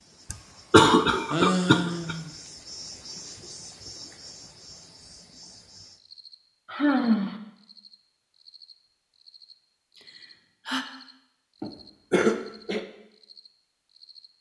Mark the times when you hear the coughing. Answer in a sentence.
The coughing can be heard from 0.3 to 2.1 s and from 11.6 to 12.8 s.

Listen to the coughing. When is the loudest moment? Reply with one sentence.
The loudest moment of the coughing is at 1 second.